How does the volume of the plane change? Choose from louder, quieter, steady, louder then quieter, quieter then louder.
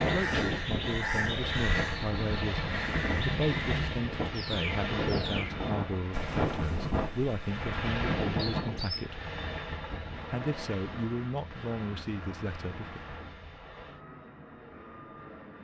quieter.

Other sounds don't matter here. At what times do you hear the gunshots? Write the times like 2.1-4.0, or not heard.
9.9-13.3.